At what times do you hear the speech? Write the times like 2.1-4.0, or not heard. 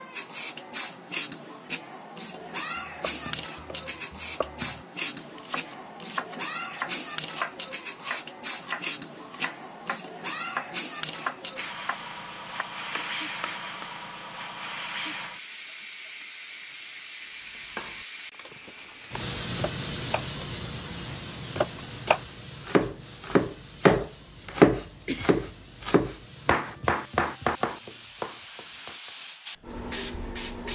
not heard.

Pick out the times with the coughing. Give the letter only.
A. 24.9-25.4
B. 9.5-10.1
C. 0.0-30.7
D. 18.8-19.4
A.